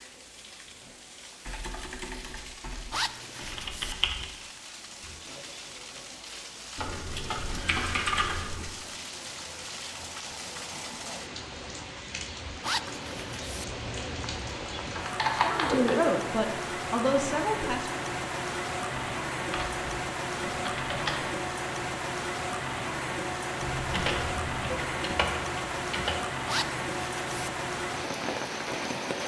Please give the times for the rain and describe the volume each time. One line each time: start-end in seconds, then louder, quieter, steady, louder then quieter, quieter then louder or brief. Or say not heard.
0.0-29.2 louder.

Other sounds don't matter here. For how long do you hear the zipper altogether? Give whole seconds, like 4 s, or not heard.
3 s.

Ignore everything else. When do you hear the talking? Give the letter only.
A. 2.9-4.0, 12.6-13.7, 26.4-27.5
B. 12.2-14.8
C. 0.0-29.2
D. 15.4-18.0
D.